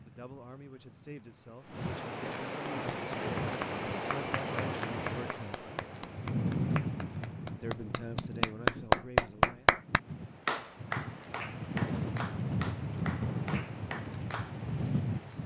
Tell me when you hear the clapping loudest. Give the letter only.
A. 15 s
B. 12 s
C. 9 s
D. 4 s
C.